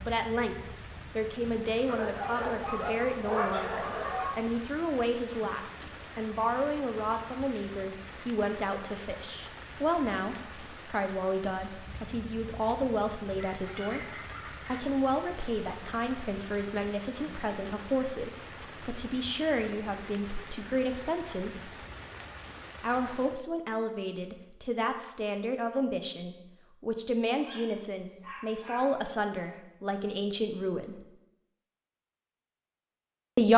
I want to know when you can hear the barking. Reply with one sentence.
You can hear the barking from 1.9 to 4.3 s, from 13.3 to 14.8 s and from 27.4 to 28.9 s.